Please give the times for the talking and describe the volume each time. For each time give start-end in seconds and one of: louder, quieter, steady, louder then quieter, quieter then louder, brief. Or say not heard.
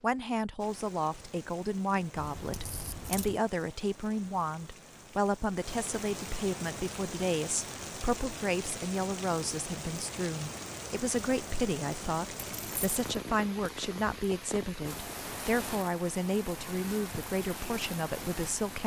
0.0-18.8 steady.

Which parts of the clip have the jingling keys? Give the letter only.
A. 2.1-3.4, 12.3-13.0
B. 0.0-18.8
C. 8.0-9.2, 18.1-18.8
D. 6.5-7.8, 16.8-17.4
A.